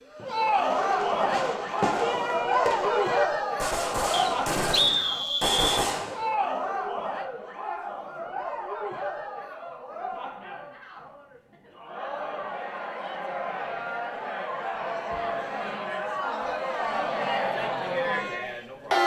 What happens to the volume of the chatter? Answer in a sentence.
The loudness of the chatter goes down, then up.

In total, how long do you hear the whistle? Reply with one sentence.
The whistle can be heard for 2 seconds in total.